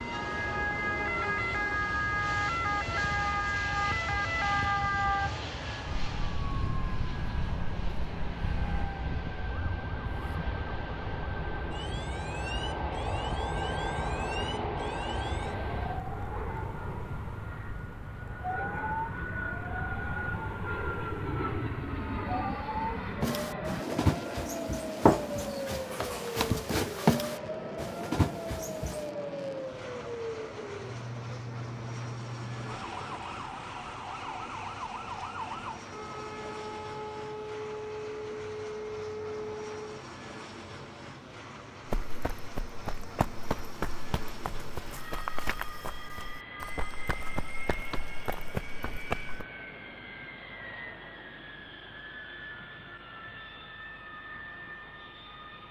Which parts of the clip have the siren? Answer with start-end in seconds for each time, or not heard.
0.0-40.0.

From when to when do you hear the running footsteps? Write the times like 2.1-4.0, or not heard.
23.2-29.1, 41.9-49.5.